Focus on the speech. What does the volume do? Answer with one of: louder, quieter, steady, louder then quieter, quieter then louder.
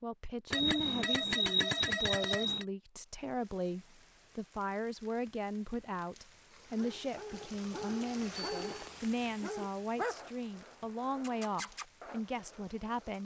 steady.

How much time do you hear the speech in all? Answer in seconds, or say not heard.
13 s.